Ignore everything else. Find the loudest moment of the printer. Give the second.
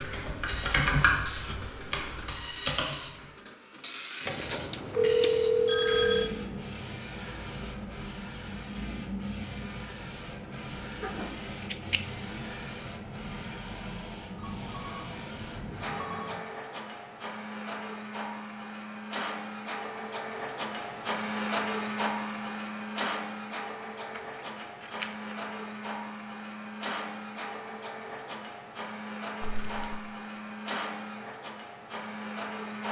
22 s.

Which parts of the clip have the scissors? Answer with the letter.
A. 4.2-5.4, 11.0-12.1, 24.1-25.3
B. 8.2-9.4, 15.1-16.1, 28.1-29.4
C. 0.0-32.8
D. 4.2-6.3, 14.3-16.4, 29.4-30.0
A.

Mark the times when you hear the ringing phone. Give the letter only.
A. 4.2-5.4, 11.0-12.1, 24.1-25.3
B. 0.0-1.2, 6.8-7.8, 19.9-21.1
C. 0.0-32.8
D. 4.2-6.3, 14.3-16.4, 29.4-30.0
D.